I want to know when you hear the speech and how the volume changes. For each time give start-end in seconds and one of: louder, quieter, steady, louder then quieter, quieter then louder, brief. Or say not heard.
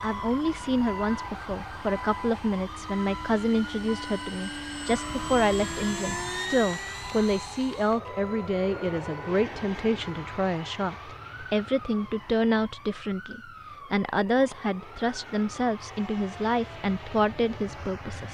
0.0-18.2 steady.